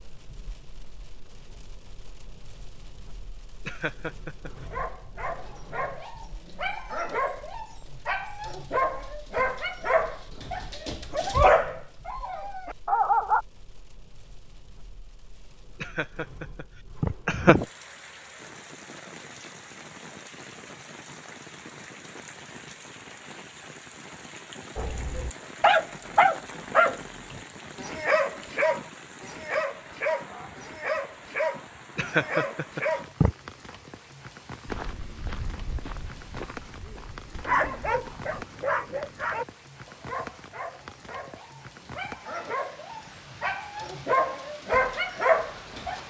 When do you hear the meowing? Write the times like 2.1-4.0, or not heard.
not heard.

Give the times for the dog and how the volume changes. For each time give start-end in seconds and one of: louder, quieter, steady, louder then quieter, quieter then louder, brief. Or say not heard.
4.5-13.4 louder
24.8-33.2 quieter
37.5-46.0 quieter then louder.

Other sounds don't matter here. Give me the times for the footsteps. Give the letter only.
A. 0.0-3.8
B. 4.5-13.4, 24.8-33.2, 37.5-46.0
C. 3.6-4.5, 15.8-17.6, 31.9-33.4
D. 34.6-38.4
D.